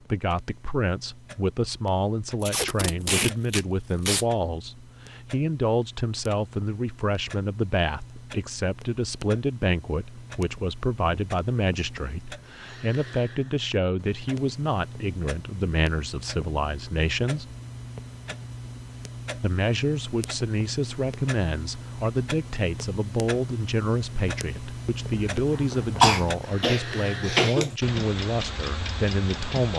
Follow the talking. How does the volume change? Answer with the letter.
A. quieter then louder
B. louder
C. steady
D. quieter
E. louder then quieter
C.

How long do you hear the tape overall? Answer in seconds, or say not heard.
2 s.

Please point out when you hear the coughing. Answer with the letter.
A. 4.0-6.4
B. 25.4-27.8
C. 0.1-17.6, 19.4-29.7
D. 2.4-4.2
B.